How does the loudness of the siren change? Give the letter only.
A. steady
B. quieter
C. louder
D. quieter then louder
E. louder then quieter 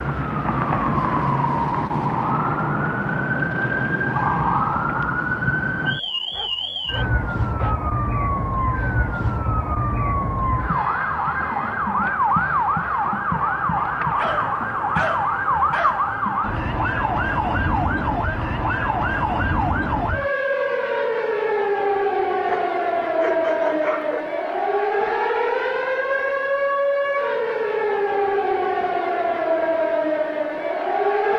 A.